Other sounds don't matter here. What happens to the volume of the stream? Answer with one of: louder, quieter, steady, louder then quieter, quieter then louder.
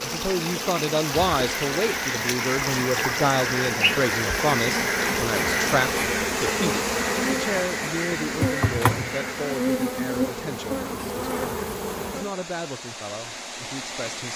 quieter.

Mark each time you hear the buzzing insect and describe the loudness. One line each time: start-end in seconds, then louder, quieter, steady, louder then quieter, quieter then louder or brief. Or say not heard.
0.0-12.3 louder.